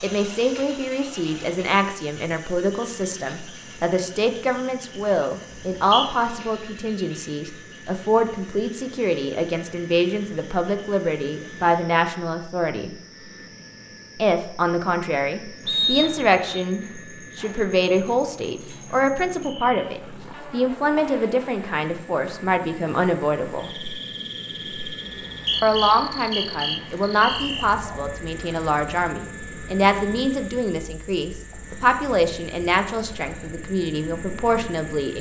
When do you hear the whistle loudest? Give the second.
16 s.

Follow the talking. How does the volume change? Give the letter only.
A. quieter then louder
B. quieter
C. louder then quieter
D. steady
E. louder
D.